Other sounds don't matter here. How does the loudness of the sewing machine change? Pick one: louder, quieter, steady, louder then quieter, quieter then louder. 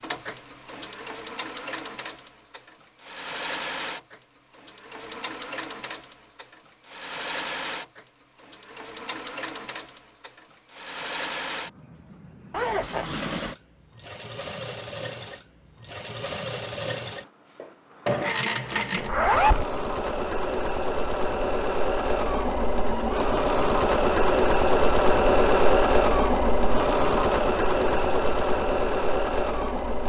louder.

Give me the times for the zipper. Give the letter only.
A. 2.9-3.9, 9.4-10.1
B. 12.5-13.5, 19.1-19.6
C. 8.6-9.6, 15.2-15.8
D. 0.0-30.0
B.